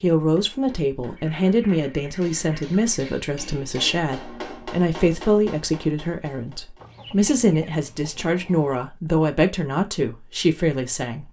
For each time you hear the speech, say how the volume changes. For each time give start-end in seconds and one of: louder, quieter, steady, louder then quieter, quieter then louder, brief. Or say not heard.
0.0-11.2 steady.